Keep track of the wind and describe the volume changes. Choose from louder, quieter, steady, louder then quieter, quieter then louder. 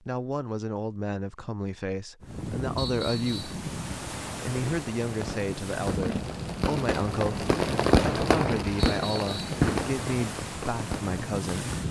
steady.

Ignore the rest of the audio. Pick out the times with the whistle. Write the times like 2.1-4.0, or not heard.
2.8-3.6, 8.8-9.6.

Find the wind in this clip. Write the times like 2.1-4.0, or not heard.
2.2-11.8.